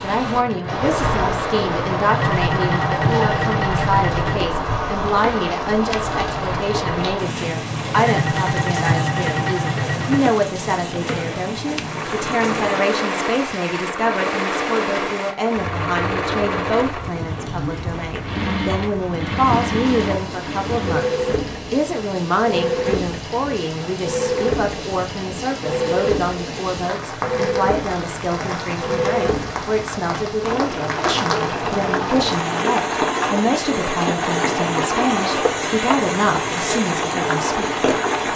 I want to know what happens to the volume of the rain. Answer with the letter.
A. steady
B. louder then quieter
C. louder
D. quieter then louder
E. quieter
D.